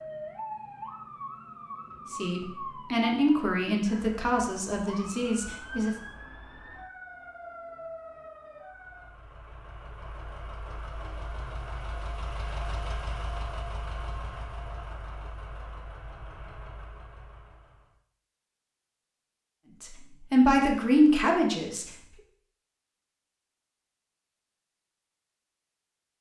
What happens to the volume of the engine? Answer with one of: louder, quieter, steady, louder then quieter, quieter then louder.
louder then quieter.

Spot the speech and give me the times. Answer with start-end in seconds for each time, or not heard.
2.1-6.0, 19.8-21.9.